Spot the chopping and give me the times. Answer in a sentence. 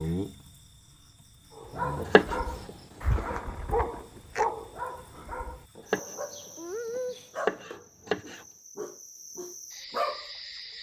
You can hear the chopping from 1.9 to 3.4 s, from 5.8 to 6.2 s and from 7.0 to 8.4 s.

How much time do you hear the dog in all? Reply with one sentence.
You can hear the dog for 9 seconds altogether.